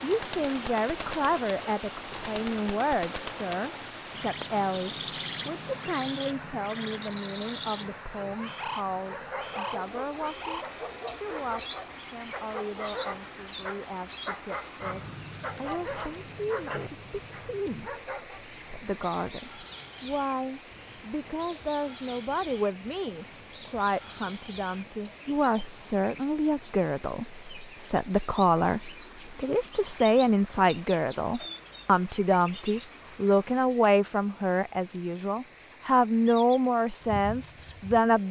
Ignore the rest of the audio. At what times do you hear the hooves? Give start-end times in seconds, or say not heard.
not heard.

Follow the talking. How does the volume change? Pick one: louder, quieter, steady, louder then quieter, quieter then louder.
quieter then louder.